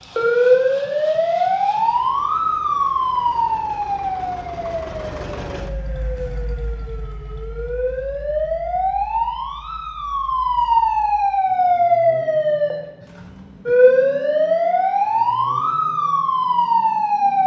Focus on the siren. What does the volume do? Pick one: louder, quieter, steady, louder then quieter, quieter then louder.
quieter then louder.